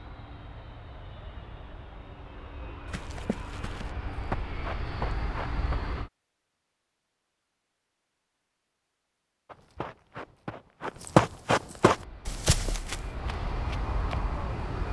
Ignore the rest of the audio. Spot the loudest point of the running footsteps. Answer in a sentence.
The volume of the running footsteps peaks at 11 seconds.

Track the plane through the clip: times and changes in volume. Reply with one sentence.
The plane can be heard from 0.0 to 6.1 s, getting louder; and briefly from 11.8 to 14.8 s.